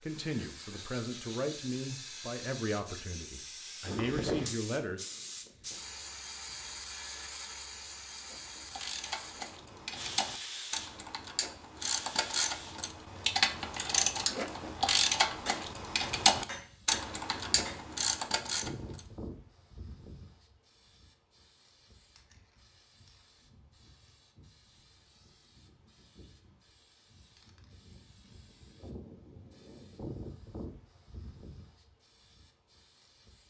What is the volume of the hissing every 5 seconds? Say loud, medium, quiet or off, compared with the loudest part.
loud, loud, loud, medium, quiet, quiet, medium.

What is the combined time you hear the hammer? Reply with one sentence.
You can hear the hammer for 2 seconds altogether.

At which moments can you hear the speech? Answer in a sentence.
You can hear the speech from 0.0 to 5.0 s.